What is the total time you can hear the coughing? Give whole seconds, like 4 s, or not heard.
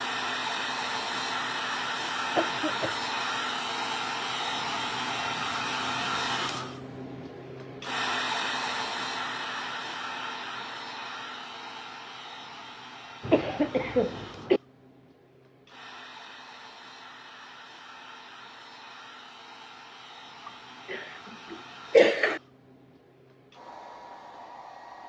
4 s.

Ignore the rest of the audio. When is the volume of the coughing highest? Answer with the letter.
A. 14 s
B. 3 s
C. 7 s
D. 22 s
D.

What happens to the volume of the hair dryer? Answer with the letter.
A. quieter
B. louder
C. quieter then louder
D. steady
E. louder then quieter
A.